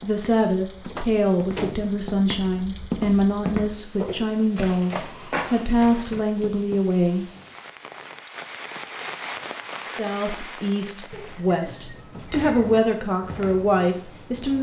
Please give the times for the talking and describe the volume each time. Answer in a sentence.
The talking can be heard from 0.0 to 7.2 s, at a steady volume; and from 9.9 to 14.5 s, getting louder.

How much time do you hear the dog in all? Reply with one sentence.
The dog can't be heard in this clip.